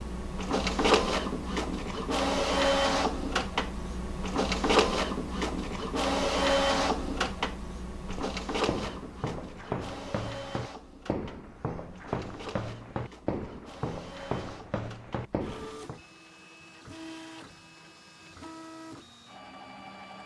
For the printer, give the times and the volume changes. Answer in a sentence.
You can hear the printer from 0.0 to 20.2 s, getting quieter.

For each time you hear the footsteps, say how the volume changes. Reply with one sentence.
The footsteps can be heard from 8.1 to 16.0 s, at a steady volume.